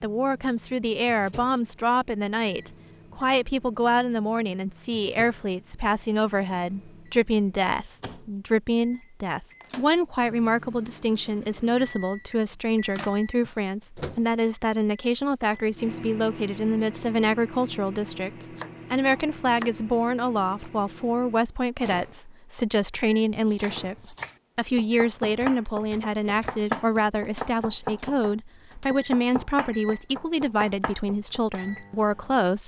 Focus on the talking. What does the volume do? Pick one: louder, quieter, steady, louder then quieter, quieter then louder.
steady.